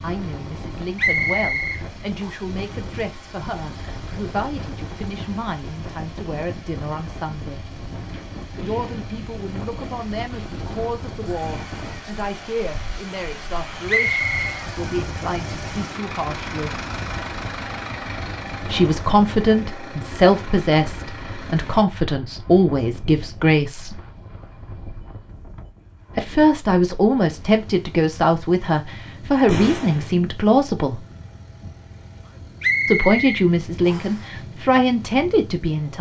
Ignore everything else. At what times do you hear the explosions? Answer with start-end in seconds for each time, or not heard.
29.4-30.1.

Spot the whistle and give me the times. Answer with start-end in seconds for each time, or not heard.
0.9-2.3, 13.8-14.4, 32.6-34.2.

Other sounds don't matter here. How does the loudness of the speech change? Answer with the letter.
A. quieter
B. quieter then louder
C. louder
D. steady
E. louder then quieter
C.